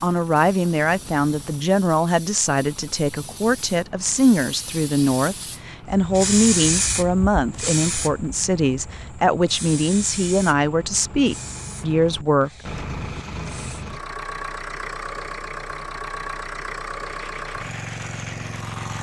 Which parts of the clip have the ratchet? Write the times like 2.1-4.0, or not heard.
not heard.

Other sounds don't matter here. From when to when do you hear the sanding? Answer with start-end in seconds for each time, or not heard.
17.1-18.9.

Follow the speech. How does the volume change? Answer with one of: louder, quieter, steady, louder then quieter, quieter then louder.
steady.